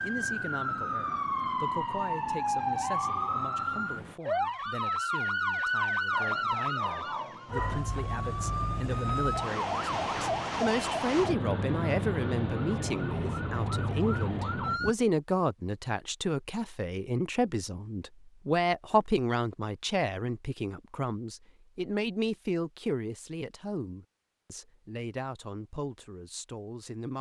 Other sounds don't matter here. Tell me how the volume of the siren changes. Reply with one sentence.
The volume of the siren stays about the same.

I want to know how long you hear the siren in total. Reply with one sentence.
You can hear the siren for 15 seconds altogether.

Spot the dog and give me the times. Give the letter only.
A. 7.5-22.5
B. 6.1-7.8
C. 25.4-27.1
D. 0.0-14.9
B.